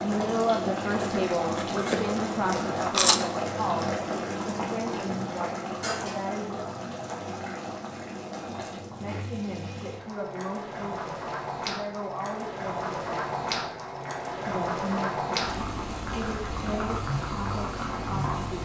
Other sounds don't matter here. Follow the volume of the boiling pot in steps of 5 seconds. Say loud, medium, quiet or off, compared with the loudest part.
loud, medium, loud, loud.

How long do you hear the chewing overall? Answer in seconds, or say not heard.
2 s.